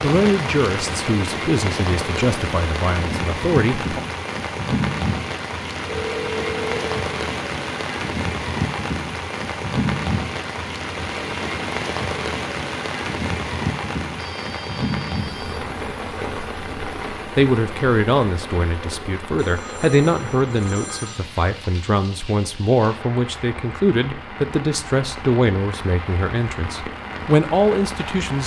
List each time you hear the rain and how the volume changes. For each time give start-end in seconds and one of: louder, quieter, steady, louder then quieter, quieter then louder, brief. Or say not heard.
0.0-28.4 quieter.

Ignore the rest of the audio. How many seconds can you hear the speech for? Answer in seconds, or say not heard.
15 s.